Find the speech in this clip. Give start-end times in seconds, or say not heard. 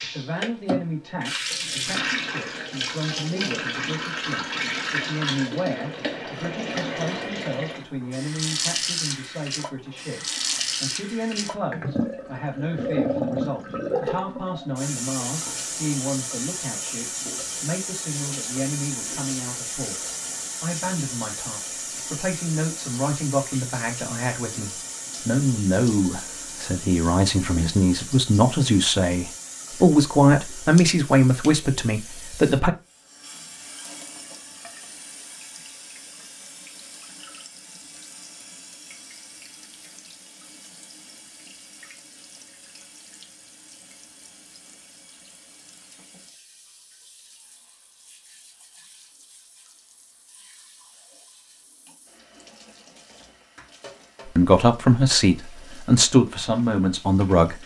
0.0-32.7, 54.2-57.5.